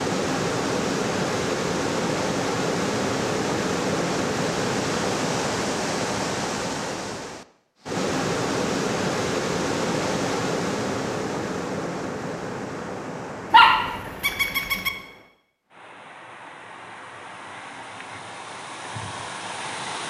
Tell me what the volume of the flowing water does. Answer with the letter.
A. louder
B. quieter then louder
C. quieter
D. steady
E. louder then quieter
C.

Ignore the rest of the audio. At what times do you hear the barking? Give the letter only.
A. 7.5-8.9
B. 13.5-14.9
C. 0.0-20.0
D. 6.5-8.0
B.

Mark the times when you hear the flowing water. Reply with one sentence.
The flowing water can be heard from 0.0 to 20.0 s.